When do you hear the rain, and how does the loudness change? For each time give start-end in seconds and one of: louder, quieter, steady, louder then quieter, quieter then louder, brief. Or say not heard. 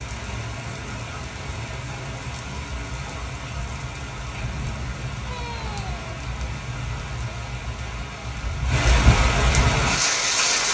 0.0-10.6 louder.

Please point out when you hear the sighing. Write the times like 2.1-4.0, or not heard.
5.3-6.0.